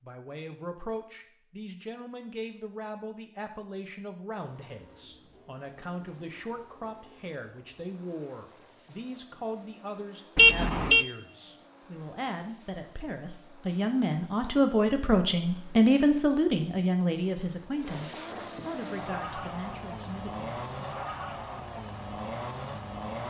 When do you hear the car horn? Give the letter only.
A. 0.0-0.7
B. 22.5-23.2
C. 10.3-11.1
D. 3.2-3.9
C.